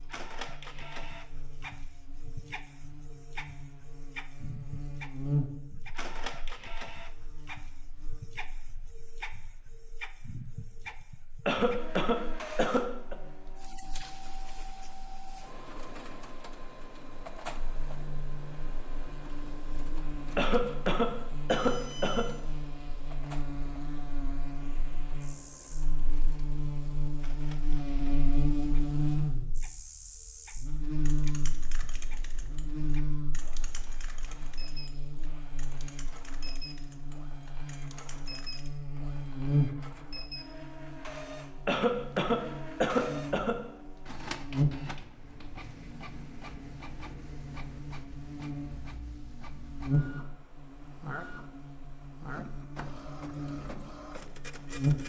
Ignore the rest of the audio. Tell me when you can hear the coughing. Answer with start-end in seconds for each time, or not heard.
11.4-13.2, 20.4-22.2, 41.6-43.5.